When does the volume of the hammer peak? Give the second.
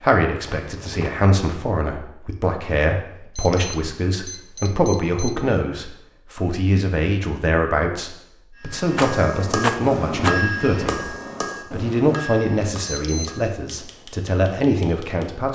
10 s.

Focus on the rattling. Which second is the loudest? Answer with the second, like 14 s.
10 s.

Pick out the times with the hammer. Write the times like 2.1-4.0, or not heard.
8.6-15.2.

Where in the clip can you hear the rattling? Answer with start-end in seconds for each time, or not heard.
0.3-1.3, 8.9-10.4.